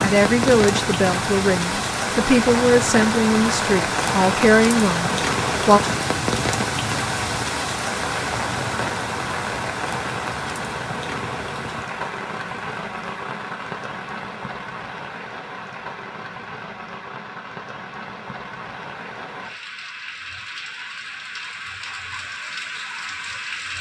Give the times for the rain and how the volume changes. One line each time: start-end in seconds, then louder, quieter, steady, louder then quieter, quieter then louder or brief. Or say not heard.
0.0-23.7 quieter.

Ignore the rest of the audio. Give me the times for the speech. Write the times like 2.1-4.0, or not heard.
0.0-5.8.